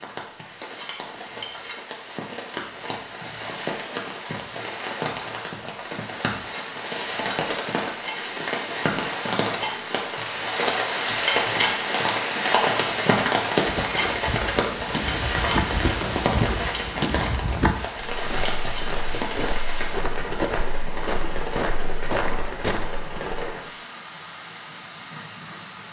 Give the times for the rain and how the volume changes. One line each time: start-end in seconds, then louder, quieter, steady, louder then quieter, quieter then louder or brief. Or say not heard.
0.0-25.8 louder then quieter.